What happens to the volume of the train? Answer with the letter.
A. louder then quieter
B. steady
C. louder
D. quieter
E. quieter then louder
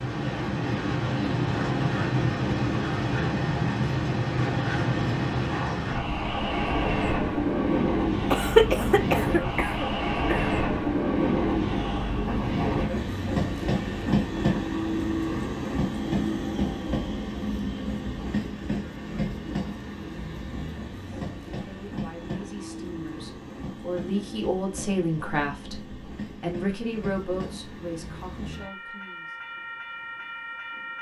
D.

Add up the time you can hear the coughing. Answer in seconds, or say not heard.
2 s.